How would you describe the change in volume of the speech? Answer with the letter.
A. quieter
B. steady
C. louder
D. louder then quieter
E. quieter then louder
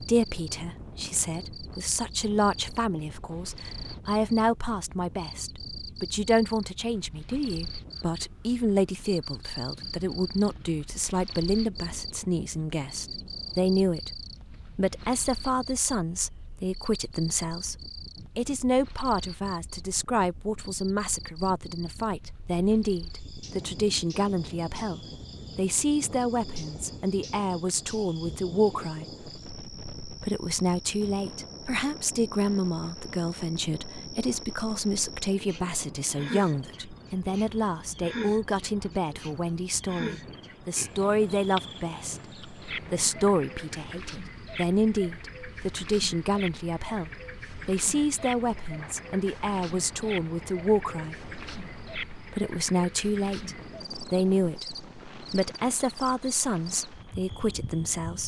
B.